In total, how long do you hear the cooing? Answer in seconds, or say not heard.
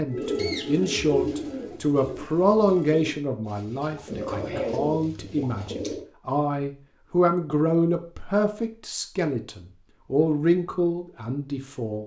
6 s.